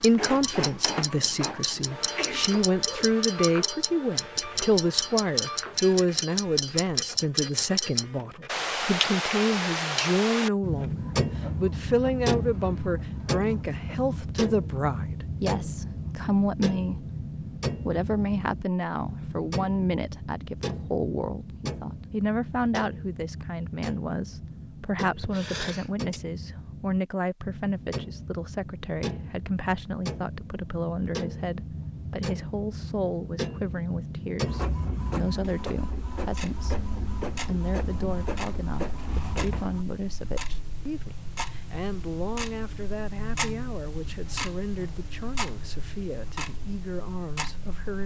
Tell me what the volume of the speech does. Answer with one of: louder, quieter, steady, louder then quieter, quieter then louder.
quieter.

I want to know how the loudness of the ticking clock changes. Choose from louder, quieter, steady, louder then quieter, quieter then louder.
quieter.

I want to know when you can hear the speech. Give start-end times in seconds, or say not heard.
0.0-16.9, 17.8-48.0.